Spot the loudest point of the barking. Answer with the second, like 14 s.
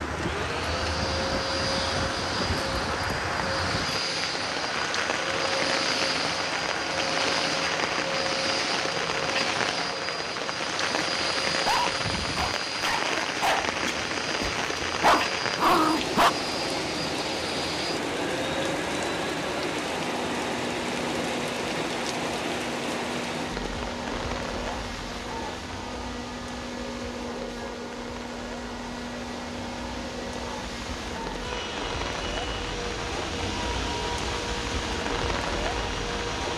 16 s.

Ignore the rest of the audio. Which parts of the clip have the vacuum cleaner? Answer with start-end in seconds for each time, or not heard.
0.1-36.5.